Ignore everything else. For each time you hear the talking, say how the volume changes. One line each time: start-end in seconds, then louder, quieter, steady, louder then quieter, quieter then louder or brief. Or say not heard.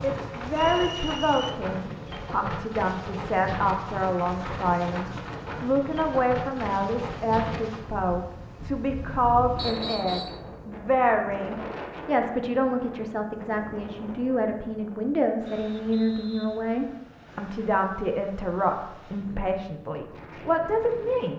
0.0-21.3 steady.